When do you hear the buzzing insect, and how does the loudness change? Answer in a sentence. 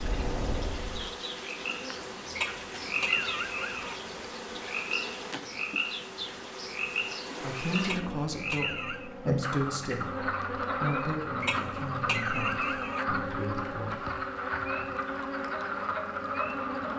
You can hear the buzzing insect from 0.0 to 16.9 s, at a steady volume.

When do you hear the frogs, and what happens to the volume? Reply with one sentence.
The frogs can be heard from 0.0 to 16.9 s, at a steady volume.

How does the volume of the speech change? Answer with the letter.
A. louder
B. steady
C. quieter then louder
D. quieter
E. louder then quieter
D.